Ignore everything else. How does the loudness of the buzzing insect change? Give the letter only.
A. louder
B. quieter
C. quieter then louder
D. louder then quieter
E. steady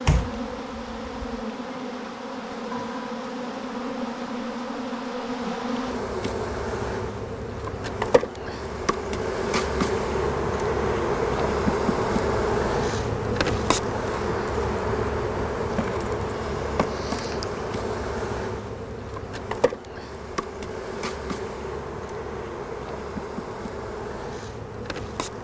D.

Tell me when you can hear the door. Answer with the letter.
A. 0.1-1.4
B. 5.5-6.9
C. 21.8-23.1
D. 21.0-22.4
A.